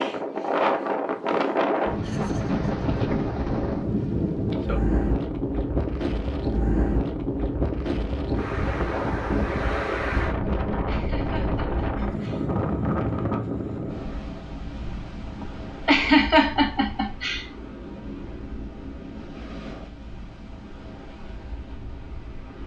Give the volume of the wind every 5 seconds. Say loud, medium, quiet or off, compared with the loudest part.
loud, loud, loud, quiet, quiet.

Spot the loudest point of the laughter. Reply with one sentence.
The volume of the laughter peaks at 16 seconds.